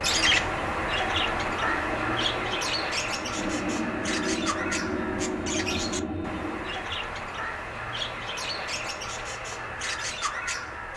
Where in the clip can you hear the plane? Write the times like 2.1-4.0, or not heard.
0.0-6.9.